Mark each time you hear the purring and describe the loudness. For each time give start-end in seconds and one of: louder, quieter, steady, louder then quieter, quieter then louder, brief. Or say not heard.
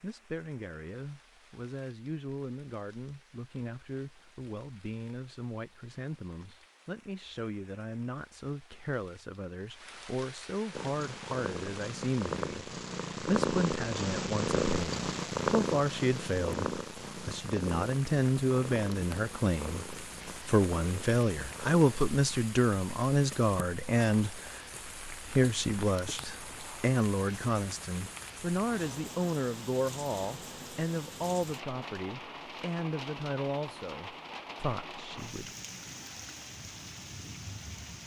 10.7-21.9 louder then quieter.